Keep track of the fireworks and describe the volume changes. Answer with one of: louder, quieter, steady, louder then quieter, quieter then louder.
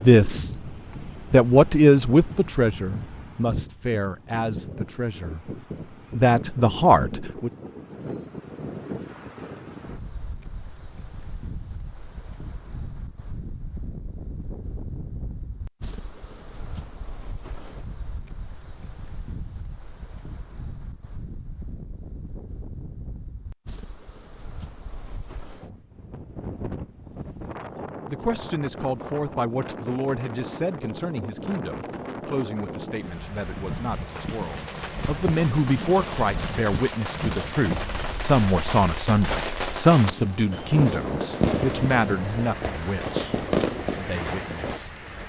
louder.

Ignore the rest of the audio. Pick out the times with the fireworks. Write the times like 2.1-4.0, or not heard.
34.0-44.8.